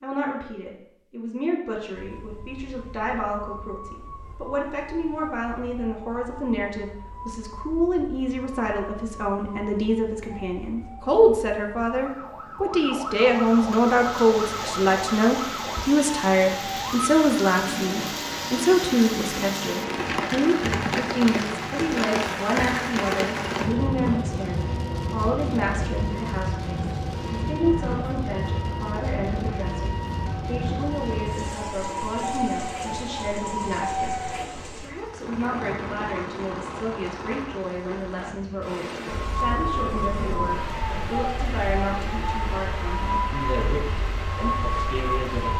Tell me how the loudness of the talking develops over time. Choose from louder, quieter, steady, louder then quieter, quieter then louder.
louder then quieter.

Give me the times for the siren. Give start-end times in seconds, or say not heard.
1.9-34.5, 39.1-45.5.